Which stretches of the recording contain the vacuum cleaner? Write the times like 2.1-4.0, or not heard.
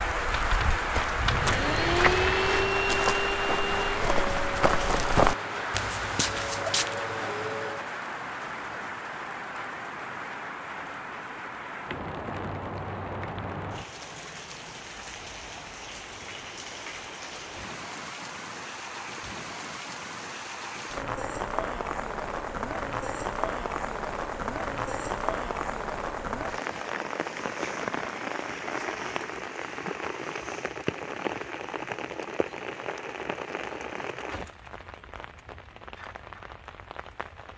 0.0-8.0.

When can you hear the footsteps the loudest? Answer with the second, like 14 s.
5 s.